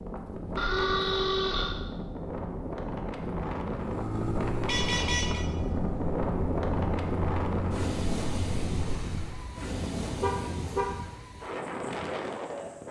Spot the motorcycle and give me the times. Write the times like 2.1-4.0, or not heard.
3.7-9.5.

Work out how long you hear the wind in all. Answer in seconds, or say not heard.
13 s.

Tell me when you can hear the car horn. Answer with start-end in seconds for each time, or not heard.
0.6-1.8, 4.7-5.5, 9.3-10.9.